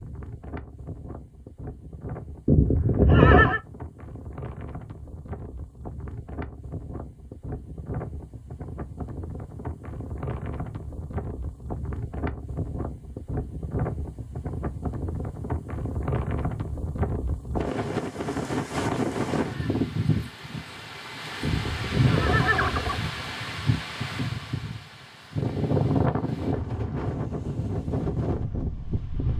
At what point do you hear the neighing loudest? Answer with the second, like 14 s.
3 s.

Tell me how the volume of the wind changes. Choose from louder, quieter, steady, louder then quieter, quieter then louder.
louder.